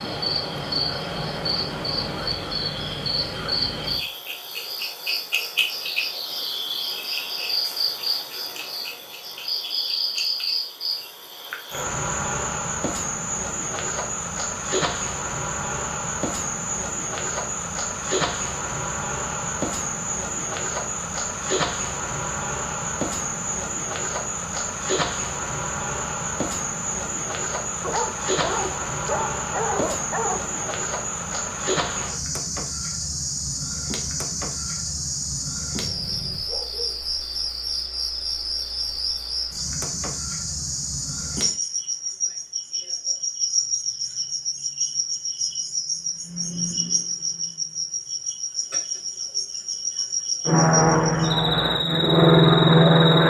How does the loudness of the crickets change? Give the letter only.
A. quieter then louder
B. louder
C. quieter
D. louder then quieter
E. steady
E.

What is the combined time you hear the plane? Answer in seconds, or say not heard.
3 s.